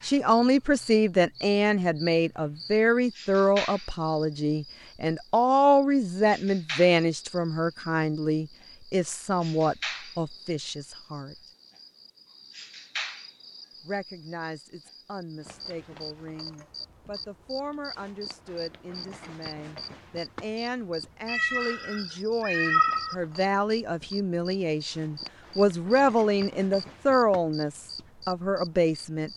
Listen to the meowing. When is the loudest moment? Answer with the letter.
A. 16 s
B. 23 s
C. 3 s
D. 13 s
B.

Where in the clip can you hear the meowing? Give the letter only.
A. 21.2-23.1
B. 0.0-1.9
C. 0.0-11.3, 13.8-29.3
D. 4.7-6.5
A.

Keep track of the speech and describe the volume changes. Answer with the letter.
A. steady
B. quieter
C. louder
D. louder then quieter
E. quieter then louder
E.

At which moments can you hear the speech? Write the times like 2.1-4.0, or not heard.
0.0-11.3, 13.8-29.3.